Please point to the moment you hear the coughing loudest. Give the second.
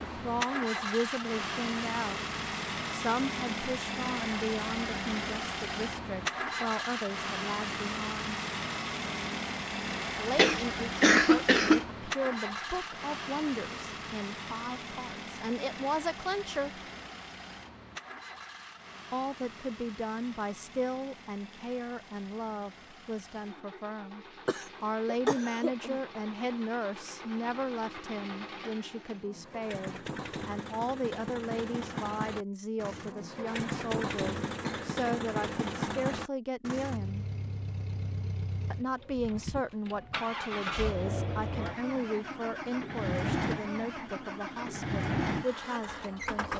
11 s.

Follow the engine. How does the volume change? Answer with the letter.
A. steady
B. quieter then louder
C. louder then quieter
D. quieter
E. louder
B.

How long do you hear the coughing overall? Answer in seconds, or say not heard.
4 s.